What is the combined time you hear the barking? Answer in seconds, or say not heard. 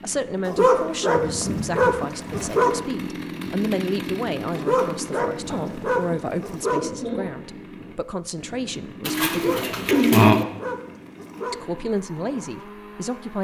7 s.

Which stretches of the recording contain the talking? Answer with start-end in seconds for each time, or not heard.
0.0-9.6, 11.5-13.3.